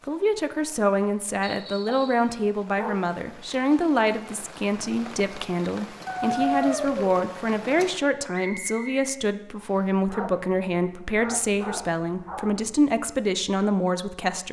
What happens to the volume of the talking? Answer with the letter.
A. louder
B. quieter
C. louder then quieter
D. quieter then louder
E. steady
E.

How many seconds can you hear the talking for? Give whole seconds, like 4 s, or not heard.
14 s.